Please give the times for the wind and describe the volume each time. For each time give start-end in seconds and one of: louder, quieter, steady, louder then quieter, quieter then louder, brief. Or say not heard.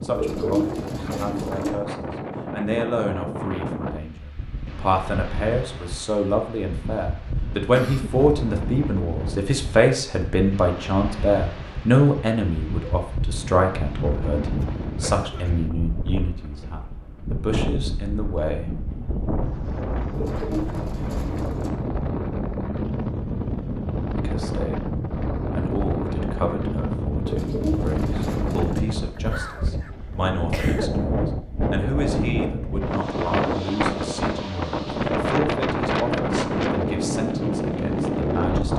0.0-38.7 louder.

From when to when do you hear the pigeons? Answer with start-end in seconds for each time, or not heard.
0.1-1.7, 20.1-21.7, 27.2-28.9.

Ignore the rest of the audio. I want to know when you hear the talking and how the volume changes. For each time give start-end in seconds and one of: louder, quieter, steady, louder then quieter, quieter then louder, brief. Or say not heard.
0.0-18.7 louder then quieter
24.1-24.8 brief
25.5-38.7 steady.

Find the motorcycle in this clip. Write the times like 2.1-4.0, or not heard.
not heard.